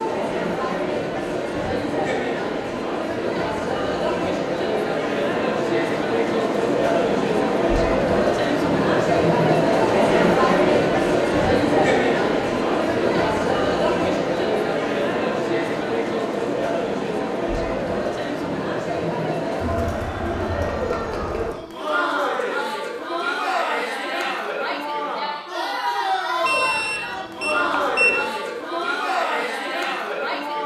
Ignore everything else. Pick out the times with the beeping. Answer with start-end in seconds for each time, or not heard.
26.4-28.3.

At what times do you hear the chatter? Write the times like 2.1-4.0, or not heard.
0.0-30.6.